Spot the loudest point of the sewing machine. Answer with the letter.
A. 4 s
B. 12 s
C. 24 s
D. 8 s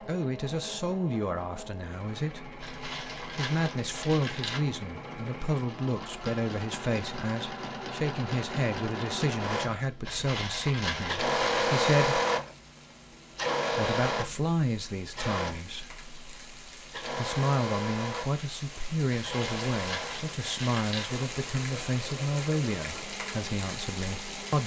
B.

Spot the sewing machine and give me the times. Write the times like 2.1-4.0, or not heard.
0.0-24.6.